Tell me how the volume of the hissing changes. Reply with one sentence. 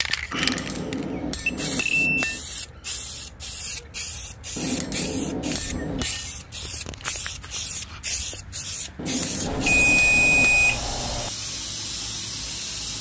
The loudness of the hissing stays about the same.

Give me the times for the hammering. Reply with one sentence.
The hammering can be heard from 0.3 to 2.5 s, from 4.5 to 6.2 s and from 8.9 to 10.6 s.